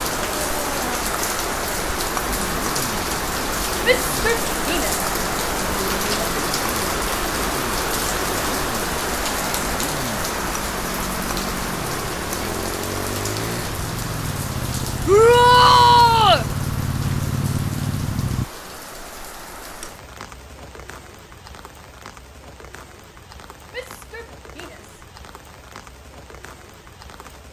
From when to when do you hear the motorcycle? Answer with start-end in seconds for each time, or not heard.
2.1-18.4.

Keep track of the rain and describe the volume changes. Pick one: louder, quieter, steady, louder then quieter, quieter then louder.
quieter.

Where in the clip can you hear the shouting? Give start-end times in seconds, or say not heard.
3.8-5.0, 5.8-6.3, 15.1-16.4, 23.7-24.9.